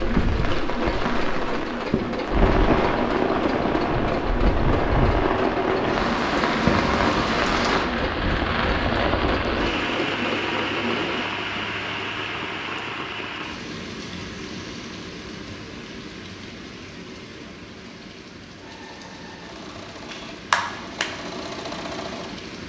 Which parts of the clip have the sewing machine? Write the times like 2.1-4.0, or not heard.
0.0-11.3, 18.6-22.4.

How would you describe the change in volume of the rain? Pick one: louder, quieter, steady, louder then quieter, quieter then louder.
quieter.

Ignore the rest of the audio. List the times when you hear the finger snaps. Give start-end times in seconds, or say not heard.
20.1-21.1.